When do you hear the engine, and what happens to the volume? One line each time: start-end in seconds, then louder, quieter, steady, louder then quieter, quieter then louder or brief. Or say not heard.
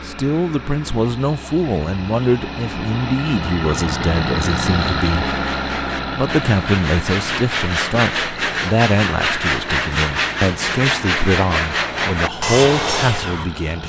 0.0-13.8 louder then quieter.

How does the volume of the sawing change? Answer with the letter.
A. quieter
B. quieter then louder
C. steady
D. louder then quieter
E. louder
E.